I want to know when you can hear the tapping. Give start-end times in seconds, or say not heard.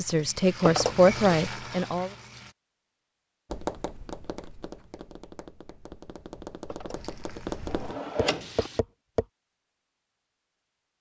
3.5-9.2.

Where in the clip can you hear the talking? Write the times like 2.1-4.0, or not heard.
0.0-2.1.